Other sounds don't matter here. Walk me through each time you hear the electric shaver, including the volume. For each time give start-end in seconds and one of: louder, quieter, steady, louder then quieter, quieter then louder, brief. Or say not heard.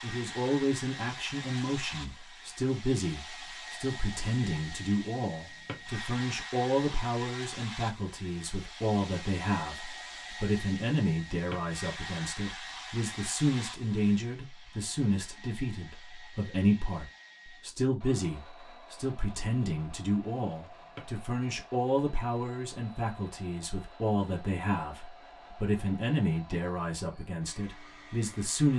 not heard.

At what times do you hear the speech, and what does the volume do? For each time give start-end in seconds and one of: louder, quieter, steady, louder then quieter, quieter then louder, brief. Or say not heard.
0.0-28.7 steady.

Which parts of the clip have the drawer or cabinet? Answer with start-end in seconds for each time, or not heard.
5.4-5.9, 11.3-11.8, 20.6-21.2.